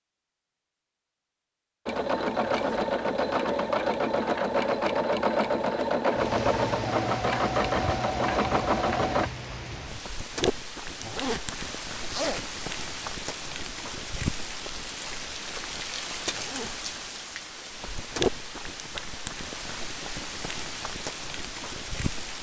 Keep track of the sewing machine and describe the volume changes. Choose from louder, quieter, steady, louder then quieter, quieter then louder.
steady.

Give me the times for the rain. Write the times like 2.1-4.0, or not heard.
6.1-22.3.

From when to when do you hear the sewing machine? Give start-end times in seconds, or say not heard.
1.9-9.3.